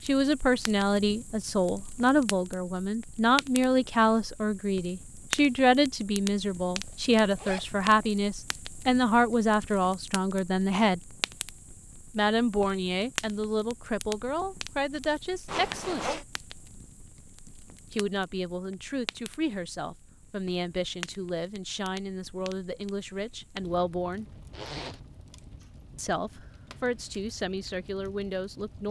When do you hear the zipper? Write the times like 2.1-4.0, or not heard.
6.8-8.1, 15.4-16.2, 24.5-25.0.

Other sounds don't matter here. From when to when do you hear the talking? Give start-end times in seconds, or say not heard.
0.0-11.0, 12.2-16.1, 17.9-24.2, 25.9-28.8.